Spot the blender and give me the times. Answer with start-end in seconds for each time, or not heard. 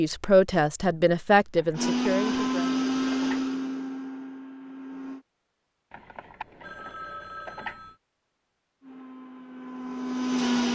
1.8-5.2, 8.8-10.7.